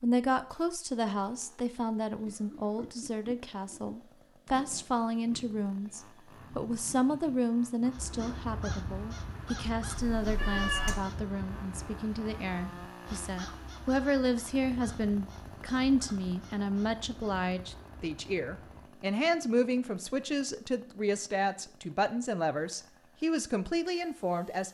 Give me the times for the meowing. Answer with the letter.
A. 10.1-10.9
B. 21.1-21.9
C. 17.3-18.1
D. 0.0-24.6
A.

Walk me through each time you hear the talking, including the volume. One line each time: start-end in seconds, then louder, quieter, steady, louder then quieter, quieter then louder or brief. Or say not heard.
0.0-24.6 steady.